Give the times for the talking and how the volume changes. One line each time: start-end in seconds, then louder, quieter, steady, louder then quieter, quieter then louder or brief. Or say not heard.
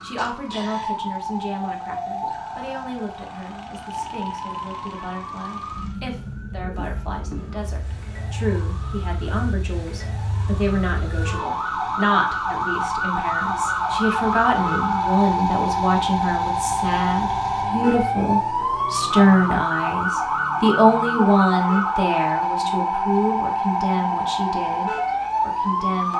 0.0-26.1 louder.